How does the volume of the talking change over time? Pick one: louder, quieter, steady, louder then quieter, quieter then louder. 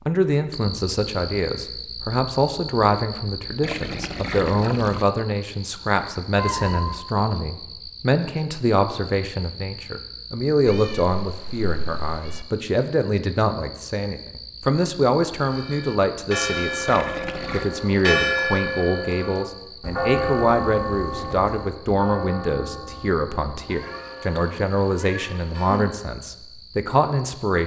steady.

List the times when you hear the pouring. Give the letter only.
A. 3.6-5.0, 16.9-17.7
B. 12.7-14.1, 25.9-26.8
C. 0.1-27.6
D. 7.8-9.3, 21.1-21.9
A.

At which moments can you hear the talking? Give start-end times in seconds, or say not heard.
0.1-27.6.